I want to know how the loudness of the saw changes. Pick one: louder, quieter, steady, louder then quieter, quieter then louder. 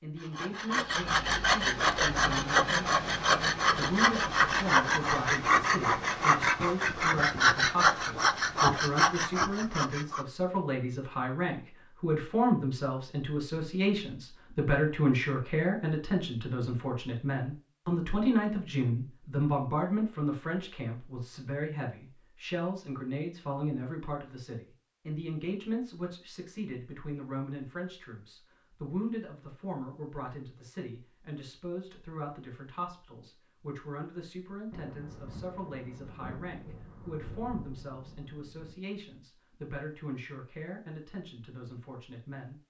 steady.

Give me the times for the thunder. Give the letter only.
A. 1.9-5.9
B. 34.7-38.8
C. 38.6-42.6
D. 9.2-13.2
B.